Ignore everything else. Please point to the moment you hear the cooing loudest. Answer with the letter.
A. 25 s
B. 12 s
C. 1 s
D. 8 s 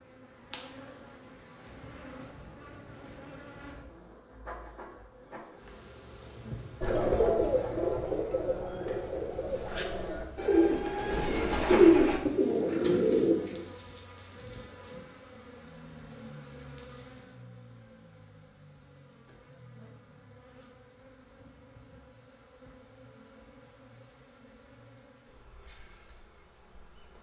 B.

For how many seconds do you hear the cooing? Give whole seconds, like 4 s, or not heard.
7 s.